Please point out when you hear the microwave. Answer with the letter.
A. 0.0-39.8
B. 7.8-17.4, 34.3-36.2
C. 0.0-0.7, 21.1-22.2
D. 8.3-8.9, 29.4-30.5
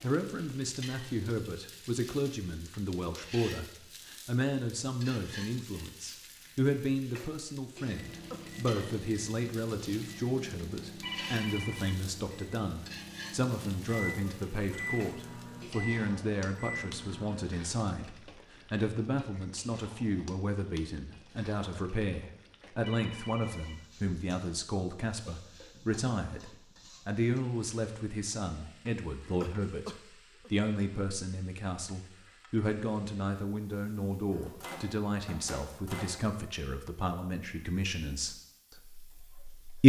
B.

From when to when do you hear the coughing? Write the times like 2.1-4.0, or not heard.
8.3-8.9, 29.4-30.5.